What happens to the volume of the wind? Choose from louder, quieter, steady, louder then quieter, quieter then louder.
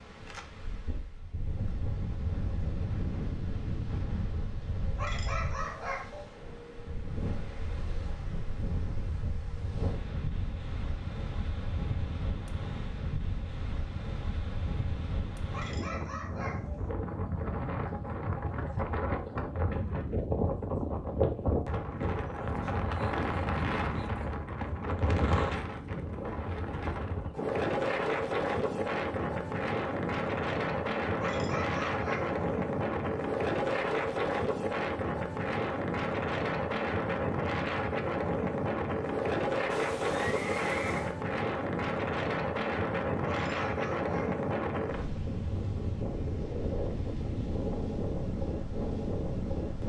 louder.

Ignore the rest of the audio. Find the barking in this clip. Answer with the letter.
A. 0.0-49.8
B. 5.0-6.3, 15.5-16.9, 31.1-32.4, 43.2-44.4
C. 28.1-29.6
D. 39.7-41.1
B.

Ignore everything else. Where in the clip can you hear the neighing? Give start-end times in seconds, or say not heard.
39.7-41.1.